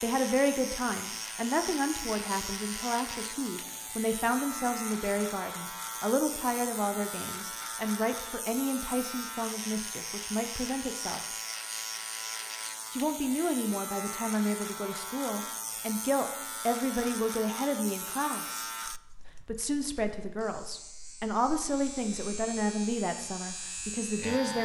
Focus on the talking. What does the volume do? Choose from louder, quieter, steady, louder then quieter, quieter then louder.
steady.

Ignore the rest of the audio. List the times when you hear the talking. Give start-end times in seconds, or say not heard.
0.0-11.2, 12.9-18.6, 19.4-24.6.